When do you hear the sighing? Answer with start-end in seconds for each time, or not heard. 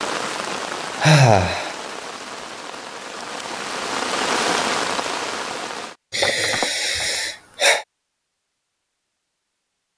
1.0-1.8, 6.1-7.8.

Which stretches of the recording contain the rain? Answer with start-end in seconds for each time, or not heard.
0.0-6.0.